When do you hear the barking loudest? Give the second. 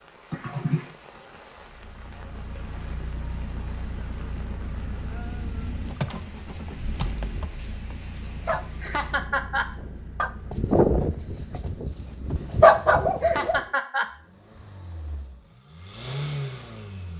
13 s.